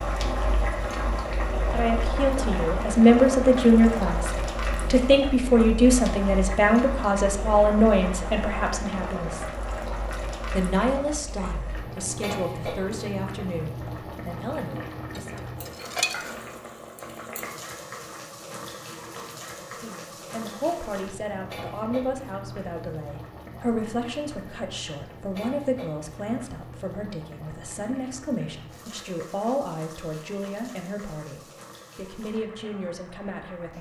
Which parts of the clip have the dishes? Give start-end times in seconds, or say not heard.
15.2-16.2.